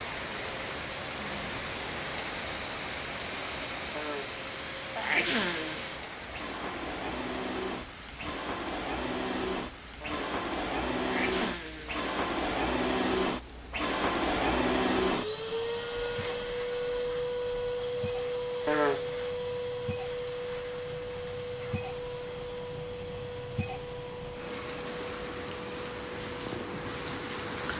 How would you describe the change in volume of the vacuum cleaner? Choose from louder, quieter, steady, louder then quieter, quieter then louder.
louder then quieter.